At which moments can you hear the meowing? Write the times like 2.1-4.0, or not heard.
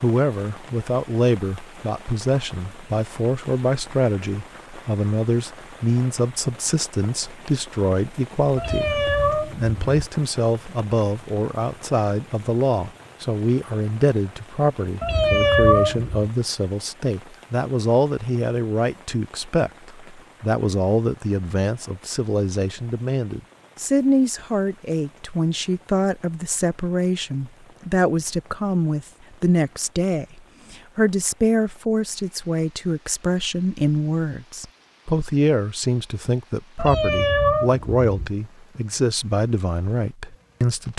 8.6-10.0, 15.0-16.2, 36.8-38.3.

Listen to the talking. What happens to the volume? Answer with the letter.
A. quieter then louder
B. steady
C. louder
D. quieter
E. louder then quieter
B.